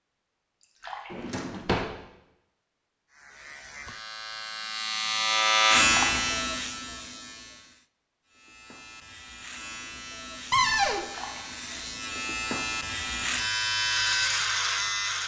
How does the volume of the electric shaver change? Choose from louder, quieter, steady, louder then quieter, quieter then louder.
quieter then louder.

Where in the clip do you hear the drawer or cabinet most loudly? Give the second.
11 s.